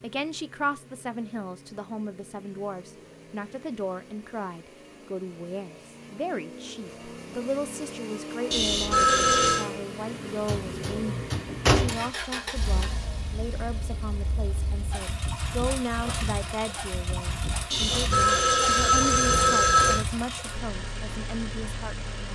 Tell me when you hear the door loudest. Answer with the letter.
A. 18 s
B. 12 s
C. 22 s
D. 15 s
B.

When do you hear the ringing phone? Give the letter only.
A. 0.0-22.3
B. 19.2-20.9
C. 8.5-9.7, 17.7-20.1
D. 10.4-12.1
C.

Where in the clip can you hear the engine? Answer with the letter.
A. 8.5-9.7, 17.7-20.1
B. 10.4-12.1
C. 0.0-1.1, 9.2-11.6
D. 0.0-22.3
D.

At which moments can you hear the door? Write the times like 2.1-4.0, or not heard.
10.4-12.1.